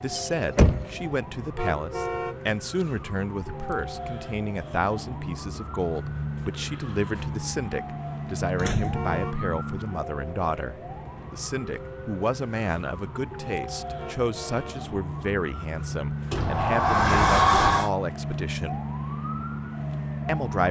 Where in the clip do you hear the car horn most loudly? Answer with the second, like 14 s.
2 s.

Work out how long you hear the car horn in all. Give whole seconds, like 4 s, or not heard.
4 s.